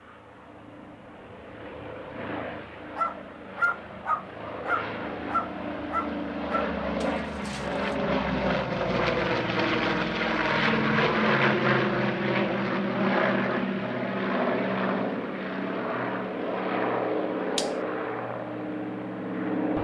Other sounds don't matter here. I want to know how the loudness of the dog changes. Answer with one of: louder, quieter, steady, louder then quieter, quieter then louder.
quieter.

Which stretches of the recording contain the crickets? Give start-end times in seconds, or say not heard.
not heard.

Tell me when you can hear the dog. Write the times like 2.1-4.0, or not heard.
3.0-8.0.